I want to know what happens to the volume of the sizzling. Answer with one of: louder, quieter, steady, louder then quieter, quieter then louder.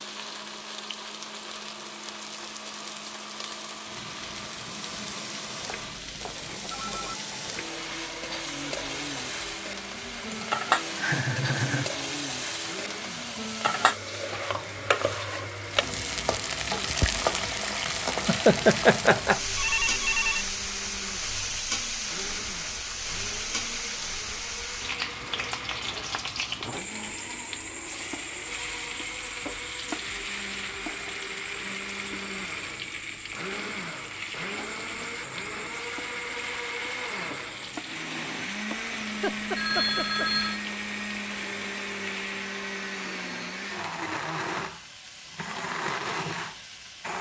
louder then quieter.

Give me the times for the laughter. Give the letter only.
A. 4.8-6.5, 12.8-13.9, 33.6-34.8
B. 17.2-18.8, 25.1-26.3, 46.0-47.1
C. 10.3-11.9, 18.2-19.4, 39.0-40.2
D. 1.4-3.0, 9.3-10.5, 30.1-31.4
C.